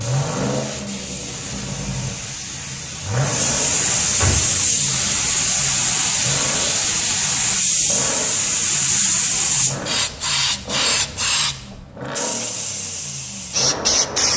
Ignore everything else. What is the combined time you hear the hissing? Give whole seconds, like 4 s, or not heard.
14 s.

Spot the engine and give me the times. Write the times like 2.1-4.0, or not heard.
0.0-14.3.